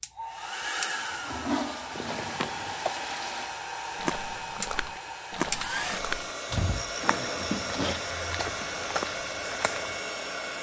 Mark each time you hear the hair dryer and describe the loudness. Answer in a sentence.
The hair dryer can be heard from 0.0 to 10.5 s, at a steady volume.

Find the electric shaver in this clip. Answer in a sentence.
You can't hear the electric shaver here.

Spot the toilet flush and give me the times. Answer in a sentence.
You can hear the toilet flush from 1.1 to 3.5 s and from 7.0 to 8.1 s.